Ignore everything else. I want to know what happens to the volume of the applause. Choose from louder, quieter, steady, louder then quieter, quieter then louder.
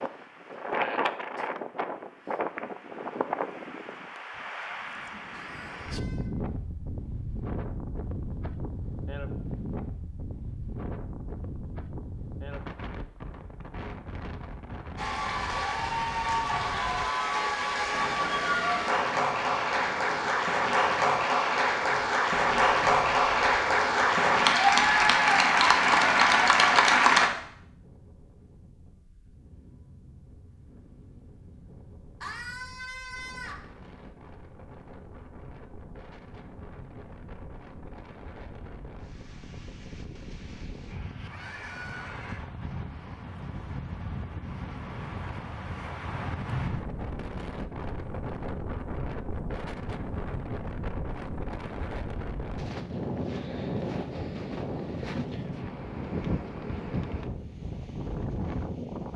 louder.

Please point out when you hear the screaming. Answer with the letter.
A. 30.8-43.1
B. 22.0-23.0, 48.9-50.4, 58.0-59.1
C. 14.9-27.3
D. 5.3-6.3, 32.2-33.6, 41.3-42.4
D.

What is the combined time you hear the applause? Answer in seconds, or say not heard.
12 s.